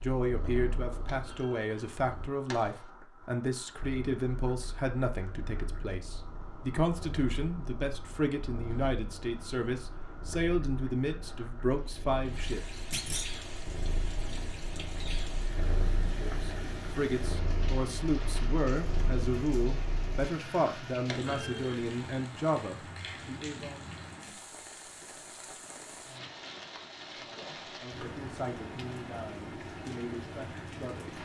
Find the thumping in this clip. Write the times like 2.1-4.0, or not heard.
1.1-2.9, 12.9-13.3, 21.1-21.9.